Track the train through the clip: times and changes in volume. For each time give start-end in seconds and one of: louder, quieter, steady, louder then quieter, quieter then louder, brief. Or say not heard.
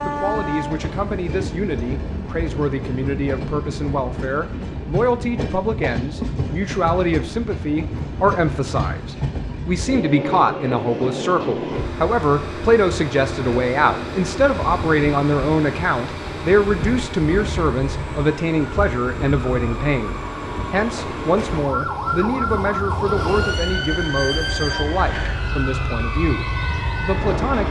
0.0-27.6 steady.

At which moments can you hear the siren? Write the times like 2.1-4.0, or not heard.
21.5-27.6.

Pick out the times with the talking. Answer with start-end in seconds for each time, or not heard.
0.0-27.6.